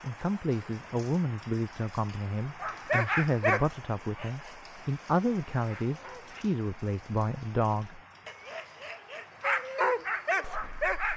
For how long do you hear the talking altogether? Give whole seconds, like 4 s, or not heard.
9 s.